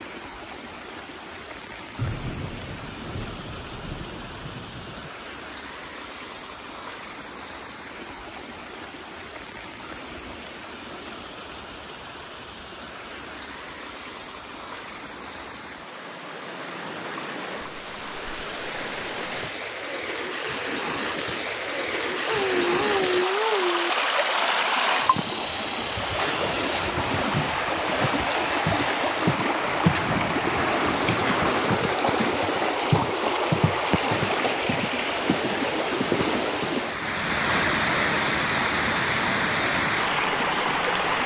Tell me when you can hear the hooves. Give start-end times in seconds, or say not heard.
not heard.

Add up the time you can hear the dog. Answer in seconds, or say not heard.
2 s.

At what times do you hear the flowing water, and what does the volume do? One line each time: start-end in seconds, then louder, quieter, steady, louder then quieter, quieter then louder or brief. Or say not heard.
0.0-41.2 louder.